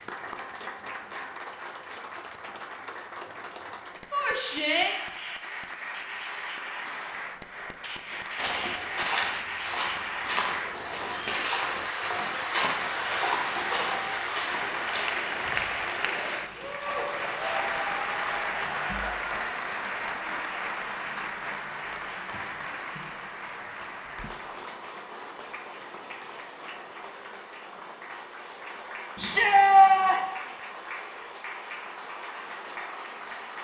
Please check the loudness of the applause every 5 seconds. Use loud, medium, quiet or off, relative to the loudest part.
medium, medium, loud, loud, medium, medium, medium.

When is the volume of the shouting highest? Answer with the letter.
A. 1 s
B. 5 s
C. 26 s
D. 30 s
D.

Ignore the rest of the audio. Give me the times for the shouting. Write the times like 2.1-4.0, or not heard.
4.1-5.0, 29.1-30.2.